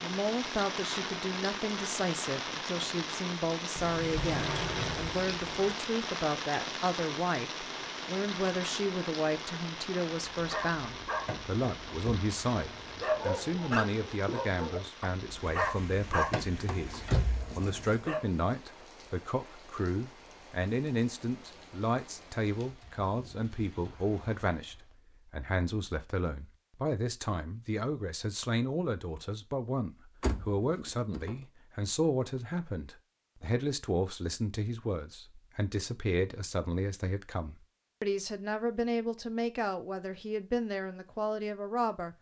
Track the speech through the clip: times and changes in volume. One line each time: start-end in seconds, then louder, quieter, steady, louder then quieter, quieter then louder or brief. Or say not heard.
0.0-42.1 steady.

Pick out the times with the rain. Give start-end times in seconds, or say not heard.
0.0-25.0.